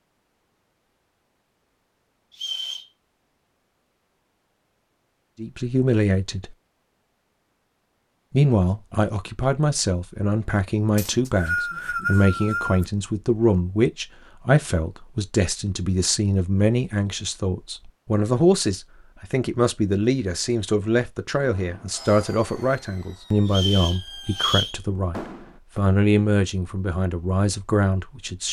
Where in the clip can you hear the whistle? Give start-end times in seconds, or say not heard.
2.3-2.9, 10.9-12.8, 23.5-24.8.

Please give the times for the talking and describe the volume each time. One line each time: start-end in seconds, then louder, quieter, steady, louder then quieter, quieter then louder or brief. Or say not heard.
5.4-6.5 brief
8.3-28.4 steady.